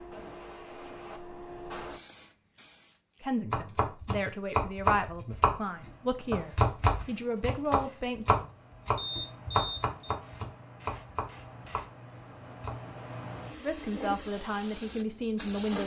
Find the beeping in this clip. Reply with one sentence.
You can hear the beeping from 8.9 to 10.2 s.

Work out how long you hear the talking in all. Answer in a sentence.
The talking can be heard for 7 seconds in total.